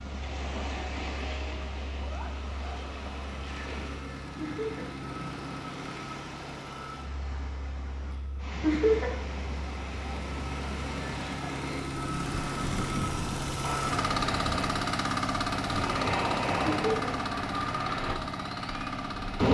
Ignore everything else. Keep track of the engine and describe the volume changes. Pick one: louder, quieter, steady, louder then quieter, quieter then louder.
louder.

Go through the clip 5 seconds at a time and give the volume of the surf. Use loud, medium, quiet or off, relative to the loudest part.
medium, medium, medium, loud.